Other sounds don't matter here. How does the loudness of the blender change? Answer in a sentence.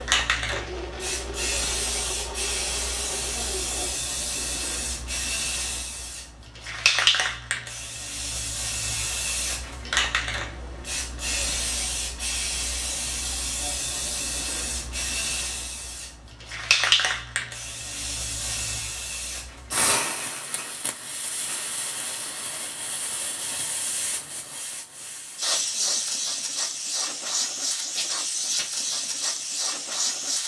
The loudness of the blender stays about the same.